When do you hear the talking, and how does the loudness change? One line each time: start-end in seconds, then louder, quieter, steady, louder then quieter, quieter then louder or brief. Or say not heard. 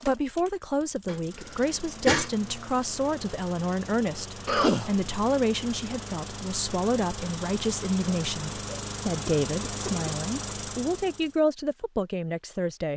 0.0-12.9 steady.